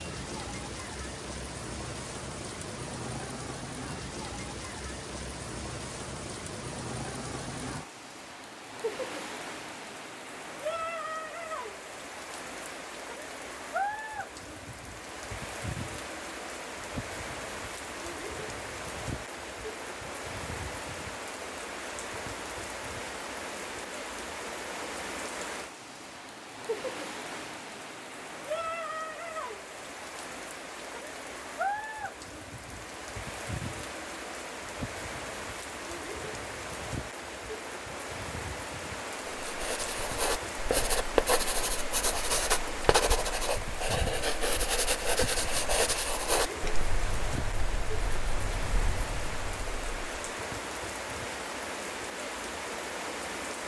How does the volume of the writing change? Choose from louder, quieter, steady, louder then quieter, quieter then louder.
quieter.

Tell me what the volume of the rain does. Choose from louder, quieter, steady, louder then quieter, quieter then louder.
steady.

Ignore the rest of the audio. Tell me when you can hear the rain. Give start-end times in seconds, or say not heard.
0.0-53.6.